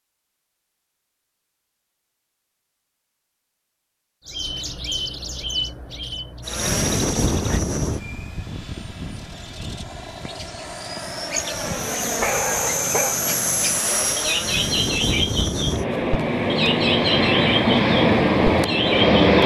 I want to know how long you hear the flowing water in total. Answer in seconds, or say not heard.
not heard.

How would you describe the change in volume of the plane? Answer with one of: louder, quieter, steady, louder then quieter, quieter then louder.
quieter then louder.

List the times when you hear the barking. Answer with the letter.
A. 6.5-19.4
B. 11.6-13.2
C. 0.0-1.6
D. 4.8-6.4
B.